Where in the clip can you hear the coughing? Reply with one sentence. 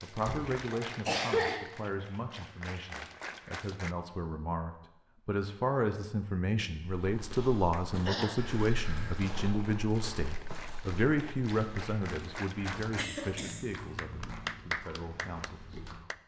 You can hear the coughing from 0.2 to 1.6 s, from 7.3 to 8.3 s and from 12.9 to 13.7 s.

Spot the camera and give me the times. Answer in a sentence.
The camera can't be heard in this clip.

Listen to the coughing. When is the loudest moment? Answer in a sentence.
The volume of the coughing peaks at 1 second.